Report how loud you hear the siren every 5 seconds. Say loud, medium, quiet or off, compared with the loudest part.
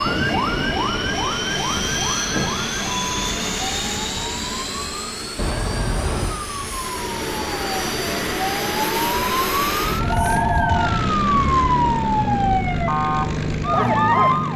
medium, medium, loud.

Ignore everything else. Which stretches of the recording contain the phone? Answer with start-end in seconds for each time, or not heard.
2.0-2.6, 5.3-6.4, 10.0-10.9.